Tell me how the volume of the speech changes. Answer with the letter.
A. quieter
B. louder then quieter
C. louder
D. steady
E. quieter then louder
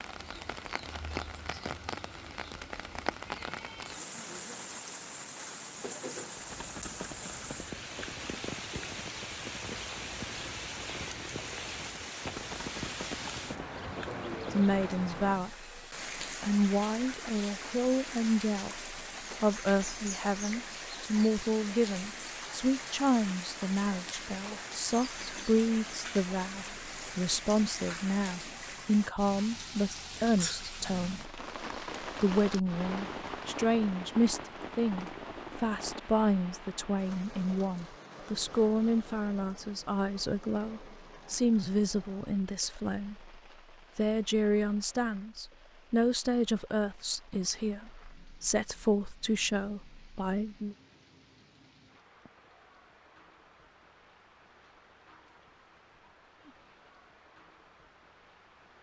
D.